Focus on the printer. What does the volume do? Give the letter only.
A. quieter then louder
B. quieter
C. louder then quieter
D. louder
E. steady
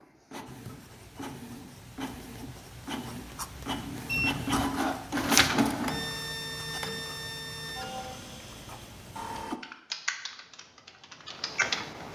C.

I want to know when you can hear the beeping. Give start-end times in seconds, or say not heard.
4.0-4.7.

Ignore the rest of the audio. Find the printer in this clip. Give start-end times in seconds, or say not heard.
0.0-9.6.